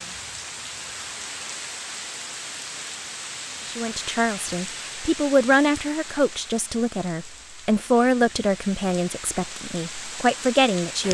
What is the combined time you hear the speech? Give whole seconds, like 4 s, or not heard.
7 s.